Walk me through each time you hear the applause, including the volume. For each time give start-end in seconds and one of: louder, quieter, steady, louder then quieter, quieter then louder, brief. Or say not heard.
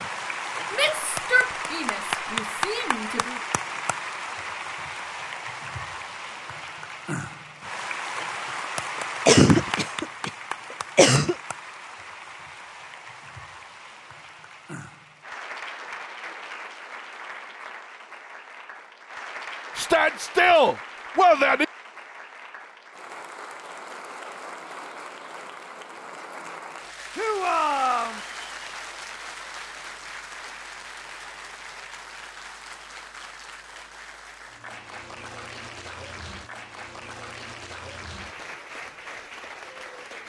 0.0-40.2 quieter.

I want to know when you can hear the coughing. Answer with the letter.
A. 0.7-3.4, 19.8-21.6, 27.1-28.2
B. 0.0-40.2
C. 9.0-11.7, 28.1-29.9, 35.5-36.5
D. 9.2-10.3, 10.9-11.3
D.